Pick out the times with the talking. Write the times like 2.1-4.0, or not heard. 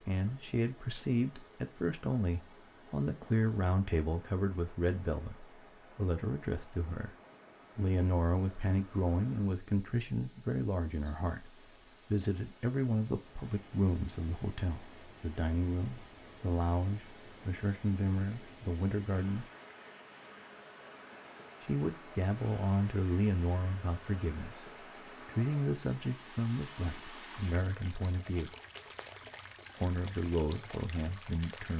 0.0-7.2, 7.8-19.4, 21.6-28.6, 29.8-31.7.